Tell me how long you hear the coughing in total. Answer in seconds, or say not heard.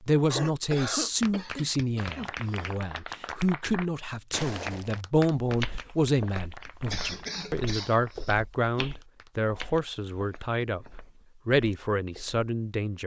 4 s.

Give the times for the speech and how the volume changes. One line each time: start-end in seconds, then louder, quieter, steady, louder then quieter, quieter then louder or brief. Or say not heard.
0.0-13.0 steady.